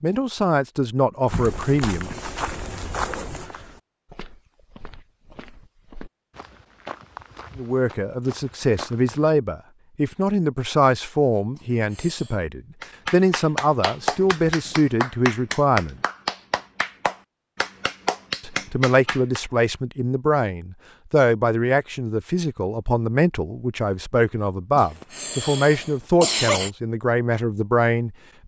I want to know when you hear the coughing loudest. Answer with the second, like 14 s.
26 s.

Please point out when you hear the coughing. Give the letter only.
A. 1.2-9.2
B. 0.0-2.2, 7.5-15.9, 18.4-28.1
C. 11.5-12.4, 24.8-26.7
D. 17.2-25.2
C.